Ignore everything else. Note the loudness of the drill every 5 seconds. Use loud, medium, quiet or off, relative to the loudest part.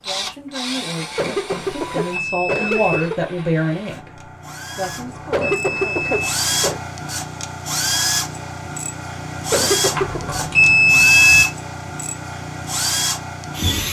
medium, loud, loud.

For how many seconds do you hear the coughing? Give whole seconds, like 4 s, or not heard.
4 s.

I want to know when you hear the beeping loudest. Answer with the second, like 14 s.
11 s.